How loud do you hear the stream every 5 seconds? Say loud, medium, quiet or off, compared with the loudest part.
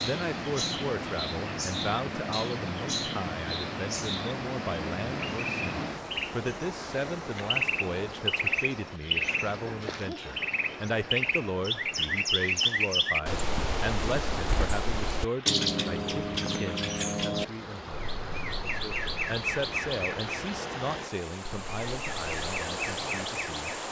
loud, loud, medium, medium, loud.